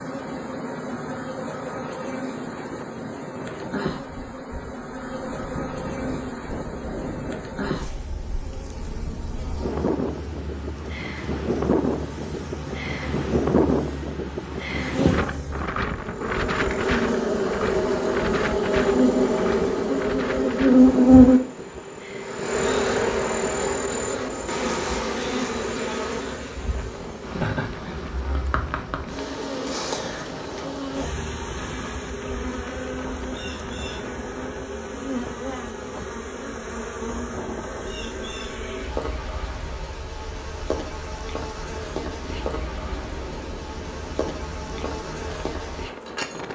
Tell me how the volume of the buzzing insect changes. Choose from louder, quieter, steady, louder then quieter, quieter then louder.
louder then quieter.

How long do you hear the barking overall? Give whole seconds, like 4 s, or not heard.
not heard.